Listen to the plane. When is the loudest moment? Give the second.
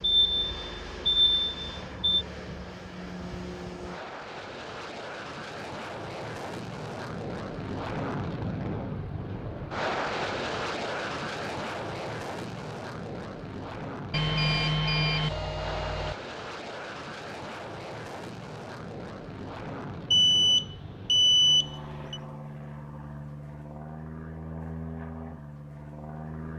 10 s.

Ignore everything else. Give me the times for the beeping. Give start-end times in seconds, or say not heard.
0.0-2.2, 14.1-16.1, 20.1-22.2.